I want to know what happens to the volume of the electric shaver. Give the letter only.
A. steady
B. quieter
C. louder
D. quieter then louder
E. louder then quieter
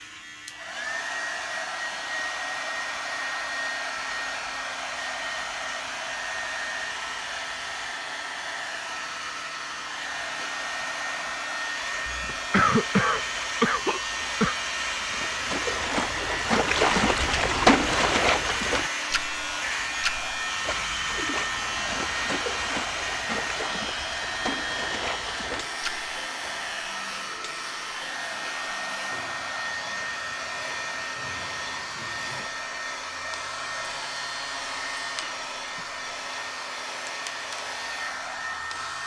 E.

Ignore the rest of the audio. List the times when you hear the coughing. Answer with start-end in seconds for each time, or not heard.
12.1-14.6.